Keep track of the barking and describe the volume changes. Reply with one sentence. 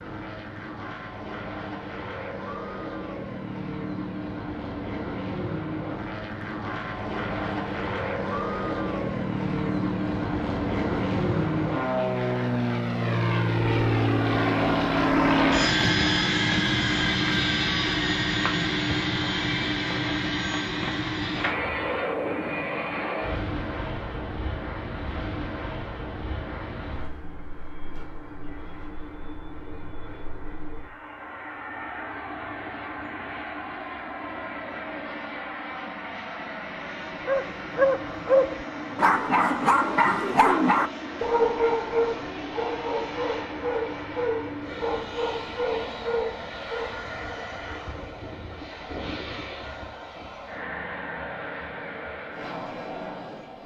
The volume of the barking goes down.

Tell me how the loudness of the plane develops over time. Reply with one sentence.
The loudness of the plane goes up, then down.